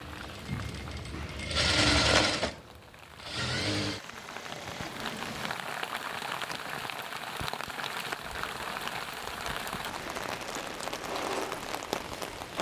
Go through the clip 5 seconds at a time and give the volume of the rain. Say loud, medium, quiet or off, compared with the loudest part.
medium, loud, loud.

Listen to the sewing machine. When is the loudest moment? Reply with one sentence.
The loudest moment of the sewing machine is at 2 seconds.